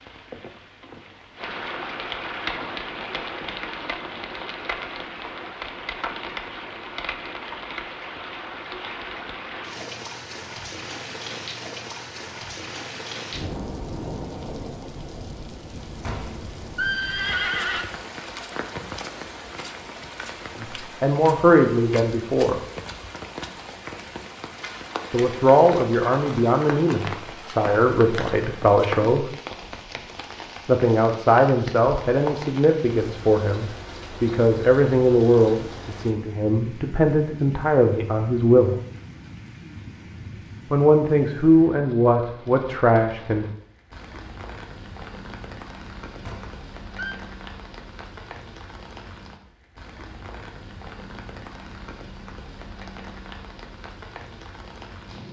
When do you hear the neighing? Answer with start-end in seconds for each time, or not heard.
16.0-17.9, 46.2-47.1.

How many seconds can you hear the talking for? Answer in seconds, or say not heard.
17 s.